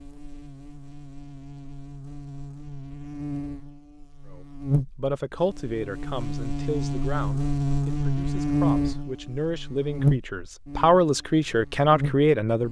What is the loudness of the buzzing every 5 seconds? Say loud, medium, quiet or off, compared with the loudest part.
medium, loud, loud.